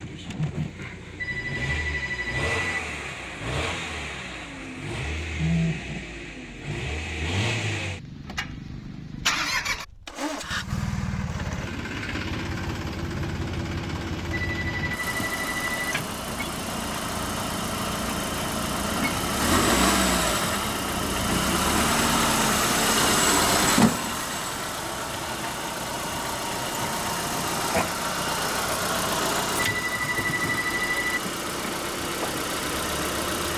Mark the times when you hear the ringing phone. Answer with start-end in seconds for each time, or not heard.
1.1-2.8, 14.3-15.9, 29.6-31.2.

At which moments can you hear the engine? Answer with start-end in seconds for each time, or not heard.
0.0-33.5.